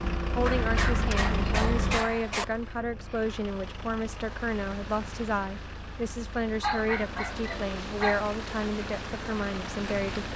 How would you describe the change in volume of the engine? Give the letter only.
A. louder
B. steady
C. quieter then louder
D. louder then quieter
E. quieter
E.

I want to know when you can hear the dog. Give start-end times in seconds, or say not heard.
0.5-2.5, 6.6-8.2.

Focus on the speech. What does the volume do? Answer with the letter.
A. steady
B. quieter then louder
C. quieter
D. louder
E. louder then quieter
A.